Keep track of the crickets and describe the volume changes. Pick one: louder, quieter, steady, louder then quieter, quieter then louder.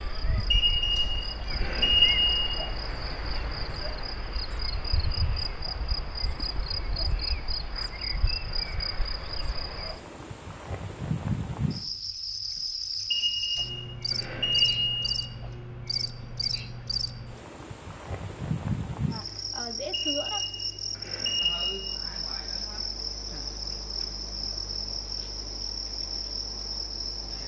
steady.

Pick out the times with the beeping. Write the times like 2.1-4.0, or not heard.
0.5-2.5, 13.1-15.1, 19.9-21.8.